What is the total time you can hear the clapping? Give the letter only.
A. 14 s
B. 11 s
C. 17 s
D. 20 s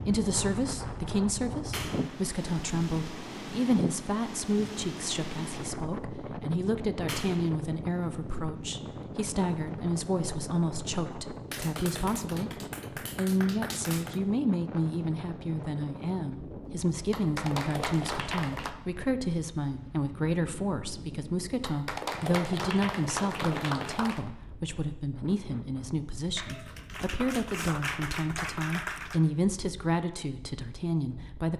B.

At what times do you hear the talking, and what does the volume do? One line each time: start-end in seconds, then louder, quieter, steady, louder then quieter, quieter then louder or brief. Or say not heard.
0.1-31.5 steady.